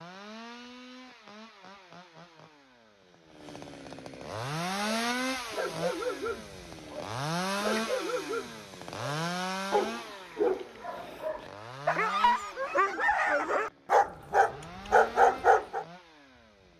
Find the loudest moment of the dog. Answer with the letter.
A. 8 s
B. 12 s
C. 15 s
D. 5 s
C.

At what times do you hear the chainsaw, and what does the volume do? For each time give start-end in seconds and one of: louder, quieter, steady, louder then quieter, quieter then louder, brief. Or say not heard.
0.0-16.7 louder then quieter.